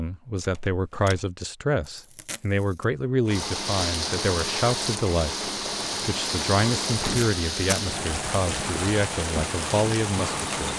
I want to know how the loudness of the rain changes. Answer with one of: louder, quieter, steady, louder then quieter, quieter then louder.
steady.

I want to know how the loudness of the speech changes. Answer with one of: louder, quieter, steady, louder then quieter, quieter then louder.
steady.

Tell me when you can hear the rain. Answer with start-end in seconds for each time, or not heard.
3.3-10.7.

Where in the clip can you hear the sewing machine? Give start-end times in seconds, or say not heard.
3.2-10.7.